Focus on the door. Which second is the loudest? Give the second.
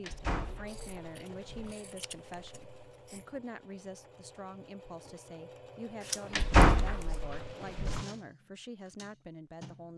7 s.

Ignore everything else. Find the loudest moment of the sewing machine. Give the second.
8 s.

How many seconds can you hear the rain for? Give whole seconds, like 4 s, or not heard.
not heard.